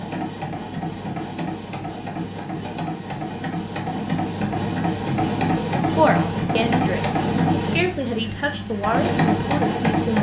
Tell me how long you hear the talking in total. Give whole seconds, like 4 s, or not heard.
4 s.